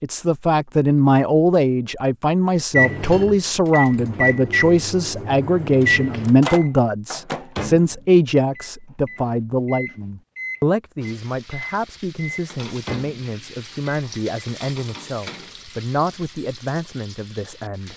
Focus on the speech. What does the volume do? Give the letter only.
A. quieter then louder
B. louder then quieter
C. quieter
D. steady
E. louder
C.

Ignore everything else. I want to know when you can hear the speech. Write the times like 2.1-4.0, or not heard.
0.0-17.9.